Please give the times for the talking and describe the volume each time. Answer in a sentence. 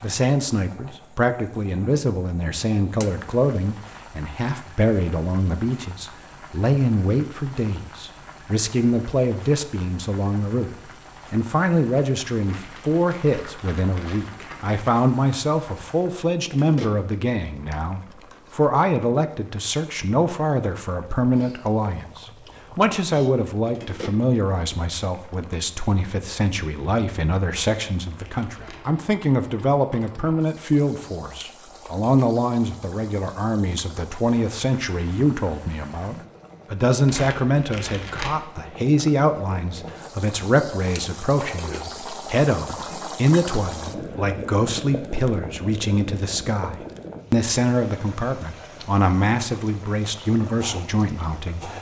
You can hear the talking from 0.0 to 51.7 s, at a steady volume.